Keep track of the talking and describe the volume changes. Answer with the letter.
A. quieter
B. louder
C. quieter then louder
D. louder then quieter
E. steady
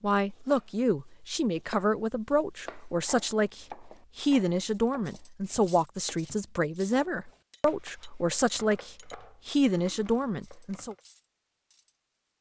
E.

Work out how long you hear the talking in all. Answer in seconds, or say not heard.
11 s.